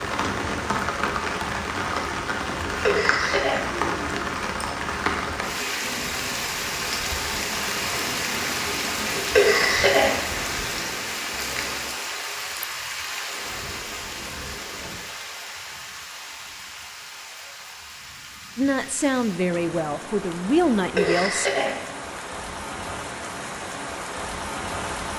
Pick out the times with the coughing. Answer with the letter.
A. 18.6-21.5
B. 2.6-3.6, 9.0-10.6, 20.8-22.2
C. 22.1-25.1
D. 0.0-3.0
B.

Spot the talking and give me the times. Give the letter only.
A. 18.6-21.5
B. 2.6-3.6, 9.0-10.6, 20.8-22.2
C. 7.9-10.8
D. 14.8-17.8
A.